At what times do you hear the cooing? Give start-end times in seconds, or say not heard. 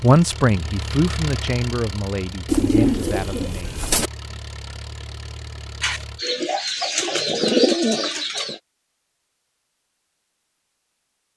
2.5-4.1, 5.8-8.6.